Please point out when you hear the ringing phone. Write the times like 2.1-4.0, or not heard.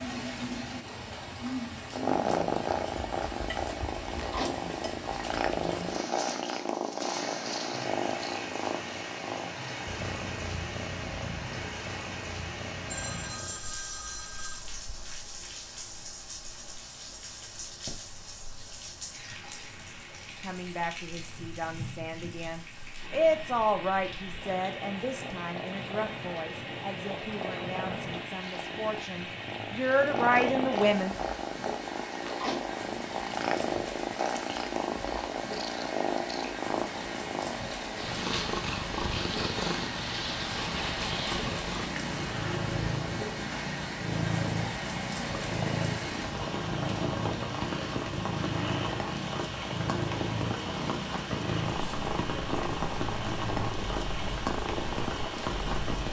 12.8-14.6.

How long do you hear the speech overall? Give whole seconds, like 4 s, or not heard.
11 s.